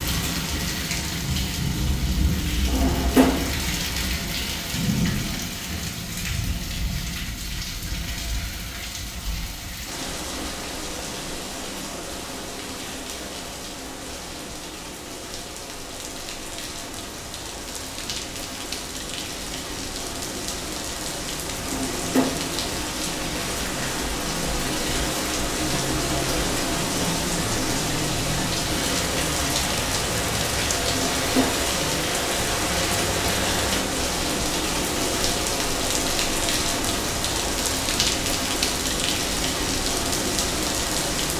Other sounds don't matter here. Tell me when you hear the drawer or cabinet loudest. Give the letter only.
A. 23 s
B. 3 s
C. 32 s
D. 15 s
B.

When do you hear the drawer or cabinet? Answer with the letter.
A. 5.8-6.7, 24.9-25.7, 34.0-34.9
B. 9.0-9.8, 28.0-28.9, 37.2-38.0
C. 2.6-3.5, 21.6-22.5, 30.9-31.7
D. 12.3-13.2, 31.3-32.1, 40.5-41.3
C.